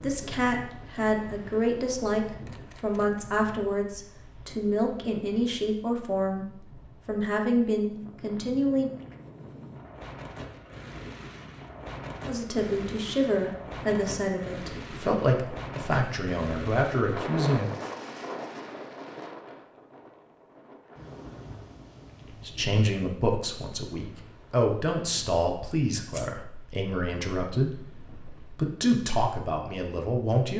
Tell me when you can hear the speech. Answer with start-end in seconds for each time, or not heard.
0.0-8.9, 12.2-17.7, 22.3-30.5.